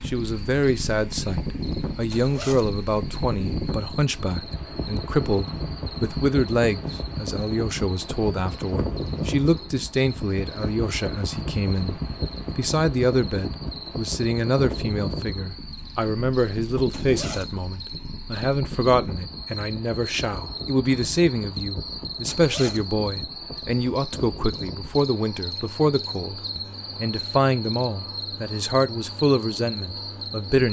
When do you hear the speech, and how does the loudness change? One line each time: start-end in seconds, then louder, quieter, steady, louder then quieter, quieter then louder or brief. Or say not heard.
0.1-30.6 steady.